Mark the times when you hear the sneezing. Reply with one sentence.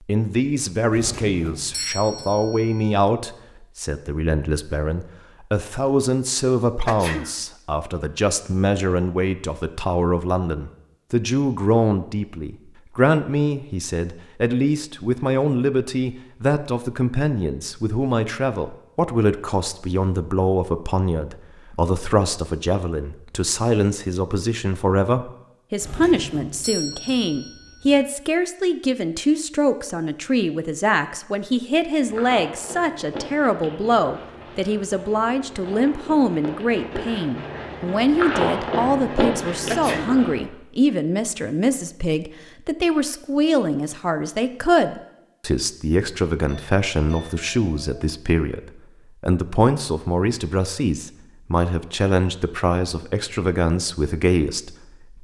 You can hear the sneezing from 6.8 to 7.3 s and from 39.7 to 40.2 s.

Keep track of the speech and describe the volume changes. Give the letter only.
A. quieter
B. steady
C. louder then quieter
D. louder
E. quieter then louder
B.